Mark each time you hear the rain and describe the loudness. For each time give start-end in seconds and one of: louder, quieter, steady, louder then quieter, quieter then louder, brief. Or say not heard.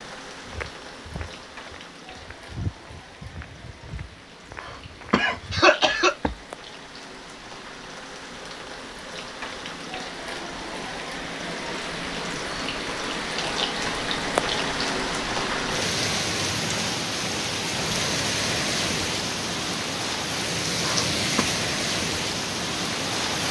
0.0-23.4 louder.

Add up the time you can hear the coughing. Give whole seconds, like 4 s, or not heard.
2 s.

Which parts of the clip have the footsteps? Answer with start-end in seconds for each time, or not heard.
0.3-6.5.